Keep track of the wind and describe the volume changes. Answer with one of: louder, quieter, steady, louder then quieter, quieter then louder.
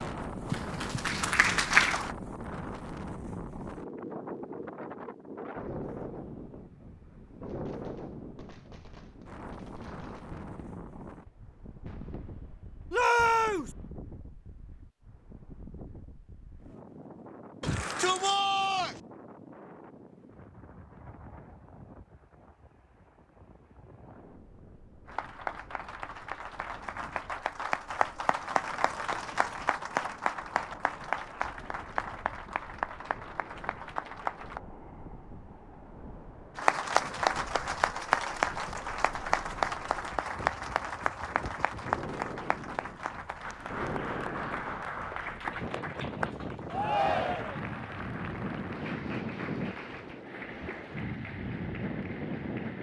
quieter then louder.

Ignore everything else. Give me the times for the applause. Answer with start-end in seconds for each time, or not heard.
0.0-2.1, 25.1-34.6, 36.5-52.7.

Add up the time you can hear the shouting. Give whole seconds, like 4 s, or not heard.
3 s.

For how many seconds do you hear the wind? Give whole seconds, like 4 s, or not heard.
53 s.